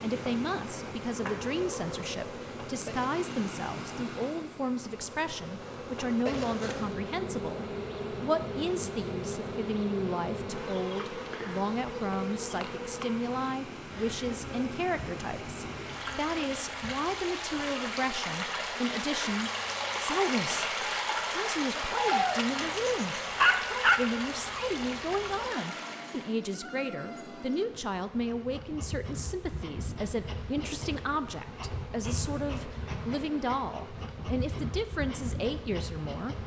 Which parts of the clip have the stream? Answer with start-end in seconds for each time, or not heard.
0.0-26.4.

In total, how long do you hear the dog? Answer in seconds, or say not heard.
2 s.